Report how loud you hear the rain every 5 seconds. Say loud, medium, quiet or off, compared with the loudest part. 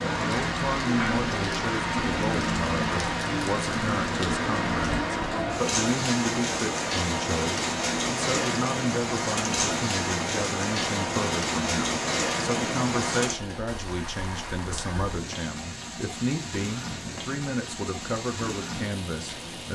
loud, loud, loud, medium.